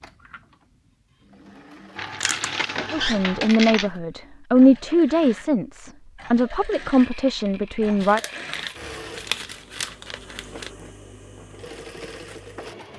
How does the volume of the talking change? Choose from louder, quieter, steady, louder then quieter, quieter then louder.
louder then quieter.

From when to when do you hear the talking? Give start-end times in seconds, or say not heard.
2.9-8.2.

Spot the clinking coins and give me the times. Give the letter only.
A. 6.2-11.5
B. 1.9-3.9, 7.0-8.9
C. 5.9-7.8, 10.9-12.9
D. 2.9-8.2
B.